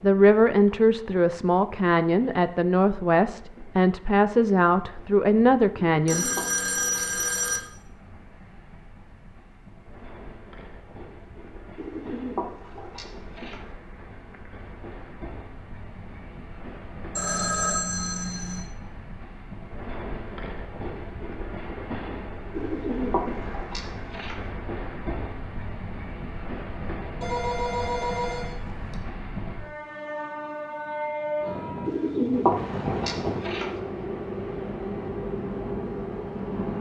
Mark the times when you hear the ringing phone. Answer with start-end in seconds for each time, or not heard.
6.0-7.6, 17.1-18.6, 27.2-28.9.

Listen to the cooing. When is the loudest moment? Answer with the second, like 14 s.
32 s.